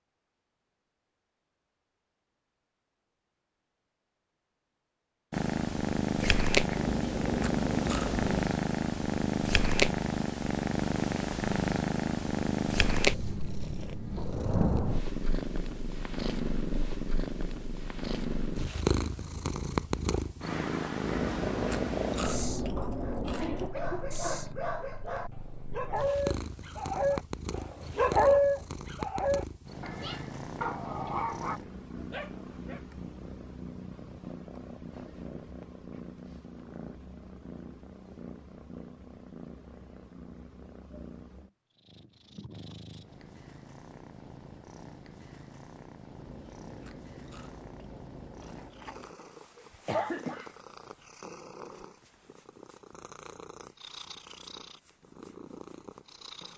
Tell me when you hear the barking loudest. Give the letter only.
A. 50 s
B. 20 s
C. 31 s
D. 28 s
D.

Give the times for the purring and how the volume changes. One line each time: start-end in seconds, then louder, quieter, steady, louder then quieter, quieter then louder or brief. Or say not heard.
5.3-56.5 quieter.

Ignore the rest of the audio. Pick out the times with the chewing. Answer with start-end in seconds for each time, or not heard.
6.8-8.4, 21.0-23.7, 46.1-49.1.